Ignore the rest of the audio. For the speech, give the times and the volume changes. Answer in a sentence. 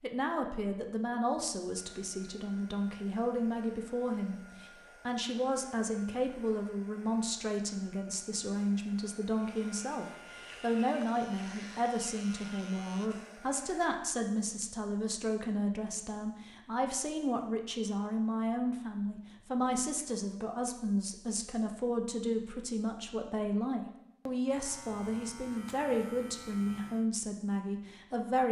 The speech can be heard from 0.0 to 28.4 s, at a steady volume.